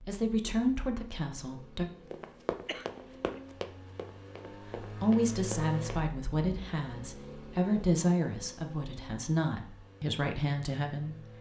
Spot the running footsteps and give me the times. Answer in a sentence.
The running footsteps can be heard from 2.1 to 6.0 s.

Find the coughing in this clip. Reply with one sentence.
The coughing can be heard from 2.6 to 3.4 s.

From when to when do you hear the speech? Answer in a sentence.
The speech can be heard from 0.1 to 1.9 s and from 4.8 to 11.3 s.